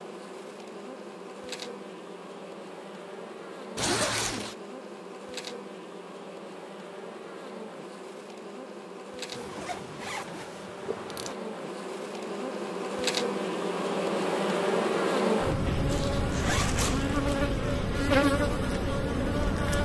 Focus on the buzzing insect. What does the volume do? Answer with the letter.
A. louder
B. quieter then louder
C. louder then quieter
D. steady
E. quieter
A.